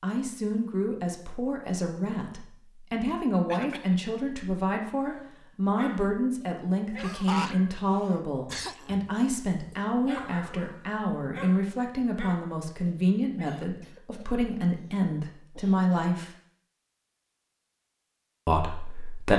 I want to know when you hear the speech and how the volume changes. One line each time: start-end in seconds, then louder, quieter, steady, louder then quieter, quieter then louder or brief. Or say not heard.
0.0-16.3 steady
18.4-19.3 brief.